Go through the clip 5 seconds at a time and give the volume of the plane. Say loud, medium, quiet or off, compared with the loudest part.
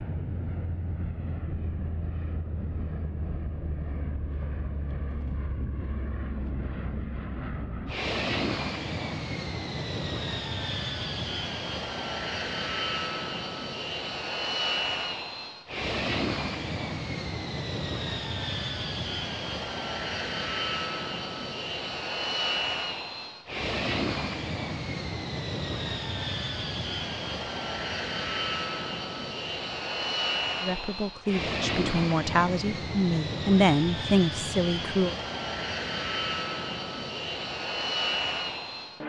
medium, loud, loud, loud, loud, loud, loud, loud.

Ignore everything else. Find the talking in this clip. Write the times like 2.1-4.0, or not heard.
30.6-35.1.